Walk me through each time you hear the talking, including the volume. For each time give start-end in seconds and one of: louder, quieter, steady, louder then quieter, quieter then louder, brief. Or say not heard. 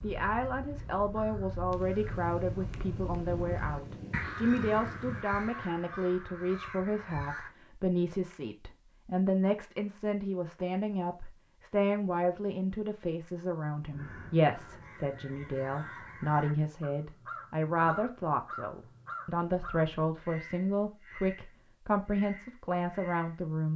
0.0-23.7 steady.